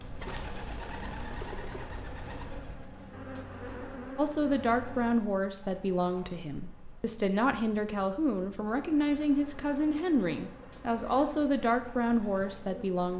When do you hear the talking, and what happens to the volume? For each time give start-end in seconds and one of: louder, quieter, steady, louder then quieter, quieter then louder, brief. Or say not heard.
4.2-13.1 steady.